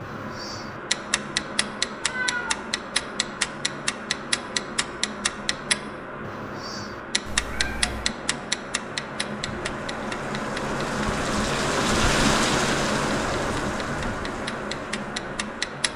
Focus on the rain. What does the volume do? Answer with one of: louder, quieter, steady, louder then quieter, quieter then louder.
louder.